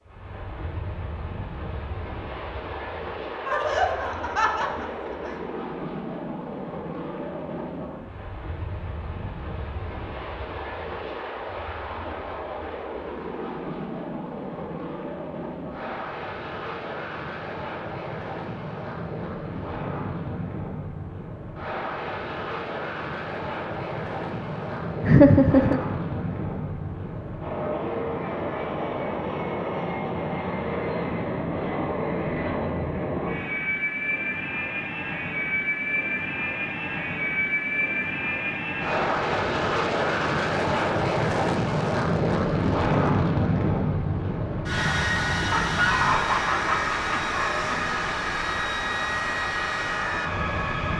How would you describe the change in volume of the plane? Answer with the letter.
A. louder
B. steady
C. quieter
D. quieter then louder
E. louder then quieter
A.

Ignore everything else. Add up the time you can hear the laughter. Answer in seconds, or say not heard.
5 s.